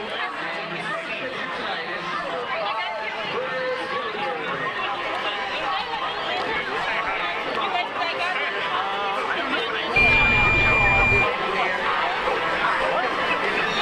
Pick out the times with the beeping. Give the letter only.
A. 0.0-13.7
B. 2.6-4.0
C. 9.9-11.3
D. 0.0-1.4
C.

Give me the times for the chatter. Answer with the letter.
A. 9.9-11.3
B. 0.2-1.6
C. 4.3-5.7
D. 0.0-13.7
D.